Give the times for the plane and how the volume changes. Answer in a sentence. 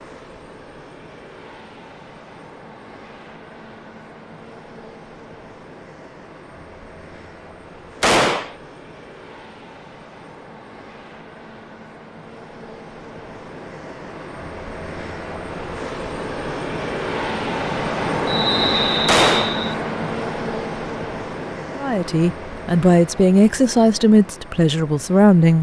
You can hear the plane from 0.0 to 25.5 s, getting louder then quieter.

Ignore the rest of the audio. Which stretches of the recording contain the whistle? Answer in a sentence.
The whistle can be heard from 18.2 to 19.8 s.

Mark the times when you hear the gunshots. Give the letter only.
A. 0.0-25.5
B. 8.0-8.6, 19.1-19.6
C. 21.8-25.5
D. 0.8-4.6
B.